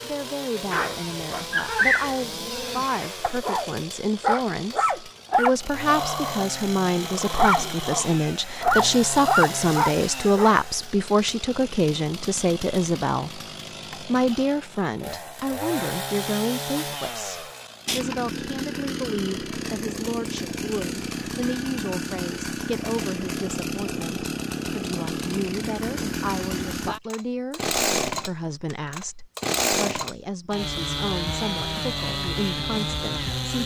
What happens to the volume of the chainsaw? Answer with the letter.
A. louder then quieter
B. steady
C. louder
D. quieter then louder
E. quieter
C.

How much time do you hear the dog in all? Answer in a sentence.
The dog can be heard for 10 seconds in total.